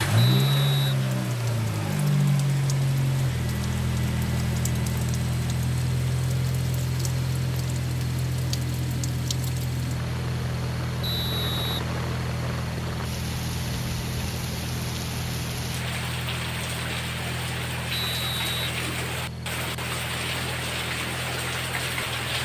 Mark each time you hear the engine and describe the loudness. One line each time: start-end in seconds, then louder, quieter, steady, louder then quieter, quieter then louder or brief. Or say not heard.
0.0-22.4 quieter.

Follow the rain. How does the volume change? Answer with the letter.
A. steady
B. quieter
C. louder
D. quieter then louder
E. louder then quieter
C.